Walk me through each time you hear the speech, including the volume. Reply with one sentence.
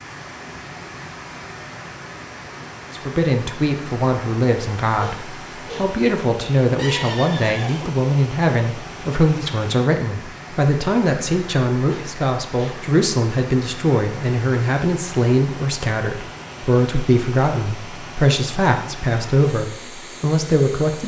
The speech can be heard from 2.9 to 21.0 s, at a steady volume.